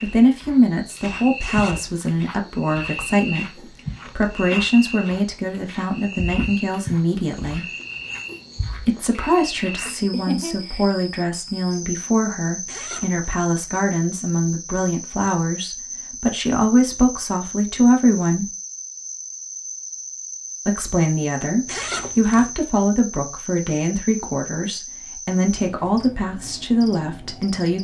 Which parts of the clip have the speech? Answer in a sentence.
You can hear the speech from 0.0 to 7.7 s, from 8.8 to 18.5 s and from 20.6 to 27.8 s.